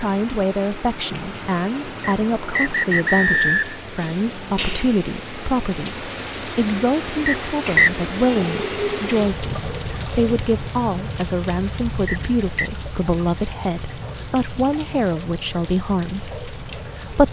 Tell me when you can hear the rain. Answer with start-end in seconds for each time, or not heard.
0.0-17.2.